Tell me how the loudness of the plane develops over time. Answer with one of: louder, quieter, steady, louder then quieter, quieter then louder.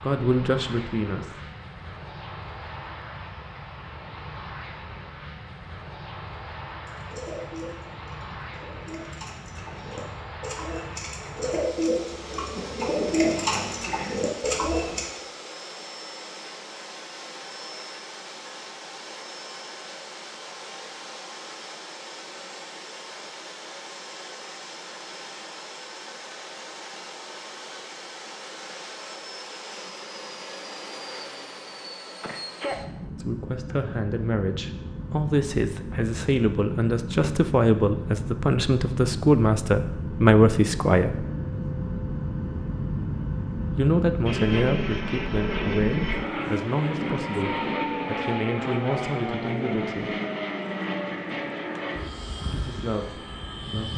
louder.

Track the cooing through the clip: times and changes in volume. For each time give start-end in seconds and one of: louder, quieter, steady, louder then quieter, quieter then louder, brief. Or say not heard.
6.8-15.1 louder.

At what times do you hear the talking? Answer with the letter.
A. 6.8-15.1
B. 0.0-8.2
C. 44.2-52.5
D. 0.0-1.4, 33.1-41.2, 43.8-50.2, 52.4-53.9
D.